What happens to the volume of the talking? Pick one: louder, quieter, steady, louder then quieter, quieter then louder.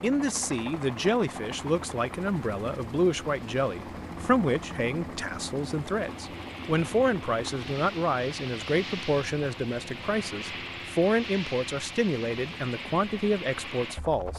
steady.